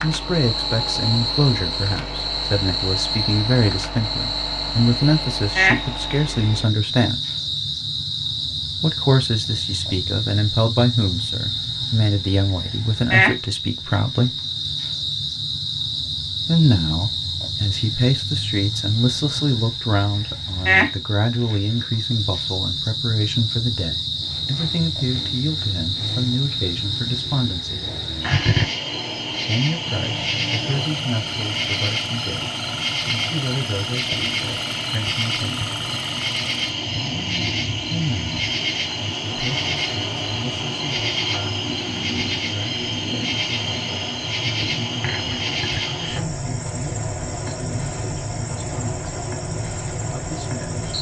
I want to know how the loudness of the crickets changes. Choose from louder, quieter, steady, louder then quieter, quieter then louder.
steady.